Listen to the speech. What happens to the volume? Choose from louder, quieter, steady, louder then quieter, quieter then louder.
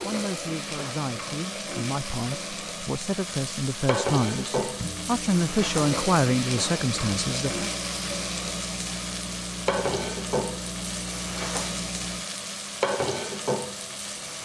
louder.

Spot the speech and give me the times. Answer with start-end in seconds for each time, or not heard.
0.0-7.7.